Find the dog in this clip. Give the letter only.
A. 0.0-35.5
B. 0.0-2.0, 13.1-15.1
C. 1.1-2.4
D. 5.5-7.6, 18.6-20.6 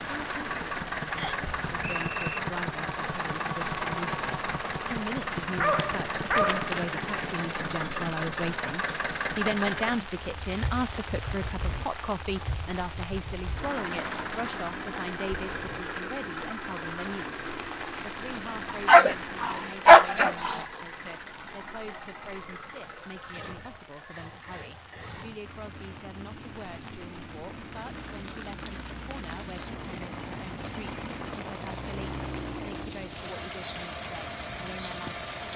D.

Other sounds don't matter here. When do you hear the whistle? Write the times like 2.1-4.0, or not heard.
1.1-2.4.